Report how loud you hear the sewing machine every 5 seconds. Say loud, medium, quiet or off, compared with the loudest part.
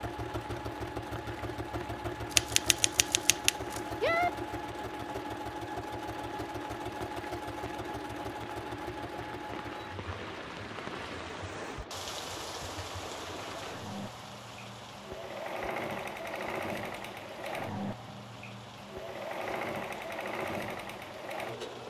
loud, loud, medium, loud, loud.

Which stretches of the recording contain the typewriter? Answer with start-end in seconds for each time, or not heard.
2.3-4.3.